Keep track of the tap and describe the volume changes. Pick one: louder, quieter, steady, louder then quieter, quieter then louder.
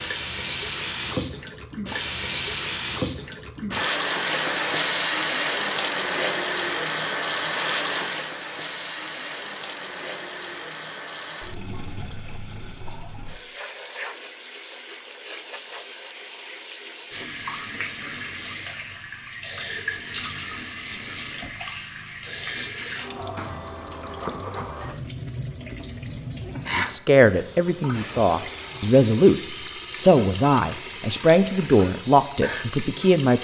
quieter.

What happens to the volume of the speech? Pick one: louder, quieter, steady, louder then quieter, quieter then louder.
steady.